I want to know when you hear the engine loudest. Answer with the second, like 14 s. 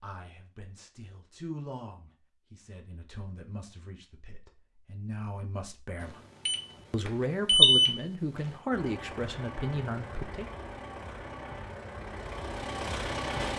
13 s.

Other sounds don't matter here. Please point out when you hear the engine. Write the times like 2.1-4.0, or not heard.
8.7-13.5.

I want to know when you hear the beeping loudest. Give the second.
8 s.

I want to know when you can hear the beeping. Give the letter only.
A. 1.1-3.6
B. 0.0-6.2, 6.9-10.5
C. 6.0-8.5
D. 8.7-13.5
C.